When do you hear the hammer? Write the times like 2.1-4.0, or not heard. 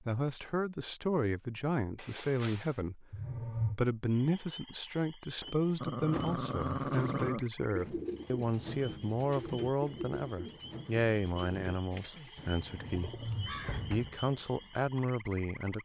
not heard.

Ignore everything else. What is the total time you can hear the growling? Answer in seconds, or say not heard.
3 s.